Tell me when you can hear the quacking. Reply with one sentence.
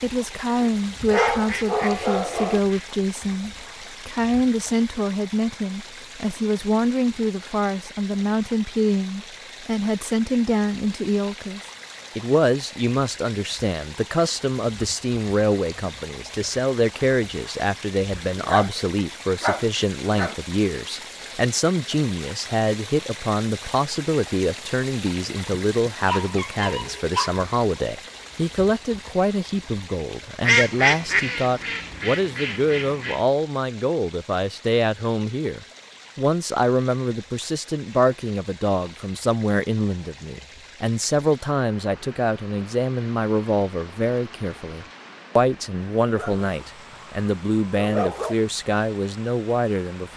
You can hear the quacking from 1.1 to 2.9 s and from 30.4 to 33.2 s.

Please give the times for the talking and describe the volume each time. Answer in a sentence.
The talking can be heard from 0.0 to 50.1 s, at a steady volume.